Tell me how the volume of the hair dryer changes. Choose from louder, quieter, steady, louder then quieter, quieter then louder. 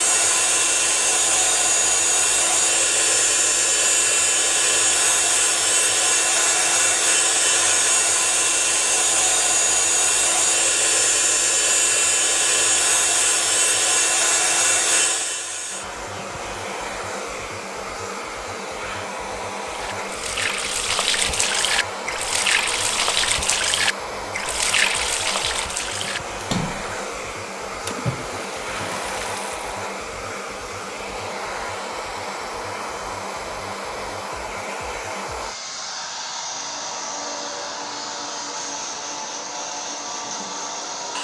quieter.